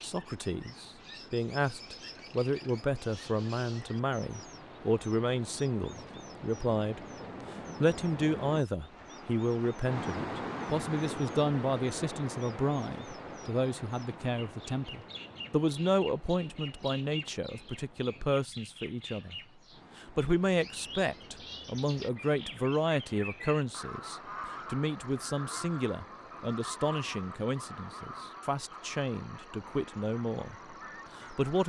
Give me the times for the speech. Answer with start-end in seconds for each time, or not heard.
0.0-7.0, 7.8-19.4, 19.9-30.6, 31.1-31.6.